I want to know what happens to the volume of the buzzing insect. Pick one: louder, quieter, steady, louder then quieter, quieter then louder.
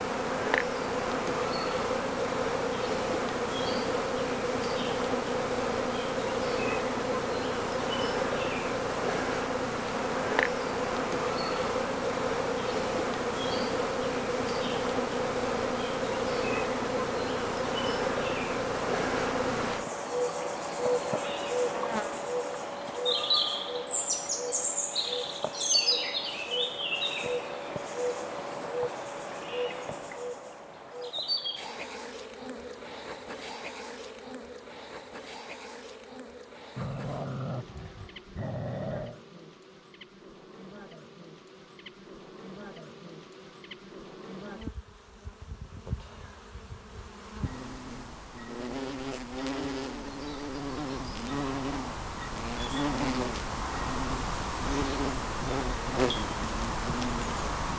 quieter then louder.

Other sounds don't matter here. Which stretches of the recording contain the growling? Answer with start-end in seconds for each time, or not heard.
36.8-39.2.